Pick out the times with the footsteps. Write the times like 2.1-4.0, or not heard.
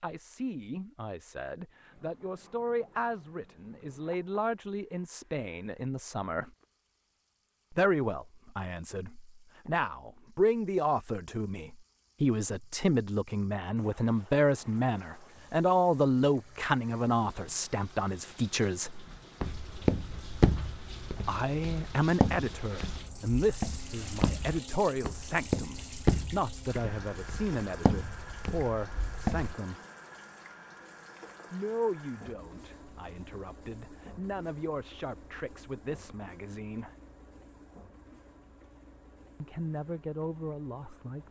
19.4-29.6.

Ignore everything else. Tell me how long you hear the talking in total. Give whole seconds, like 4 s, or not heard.
34 s.